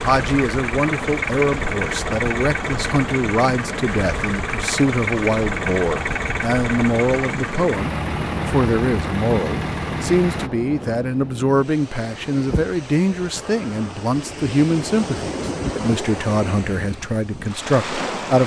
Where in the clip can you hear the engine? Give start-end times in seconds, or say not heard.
0.0-10.5.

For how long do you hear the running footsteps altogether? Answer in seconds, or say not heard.
not heard.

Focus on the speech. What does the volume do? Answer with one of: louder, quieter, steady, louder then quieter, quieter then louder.
steady.